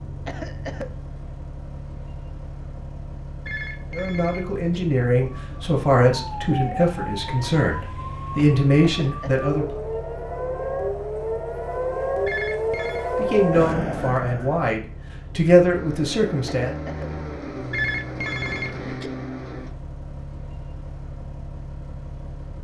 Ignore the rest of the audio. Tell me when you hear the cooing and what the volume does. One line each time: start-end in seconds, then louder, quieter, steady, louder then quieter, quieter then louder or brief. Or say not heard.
not heard.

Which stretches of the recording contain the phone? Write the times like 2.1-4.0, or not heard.
3.5-4.8, 12.2-13.1, 17.7-19.1.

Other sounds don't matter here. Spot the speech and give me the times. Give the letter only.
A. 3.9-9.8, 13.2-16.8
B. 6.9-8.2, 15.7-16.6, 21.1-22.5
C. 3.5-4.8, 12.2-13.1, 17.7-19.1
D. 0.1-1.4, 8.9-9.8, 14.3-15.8
A.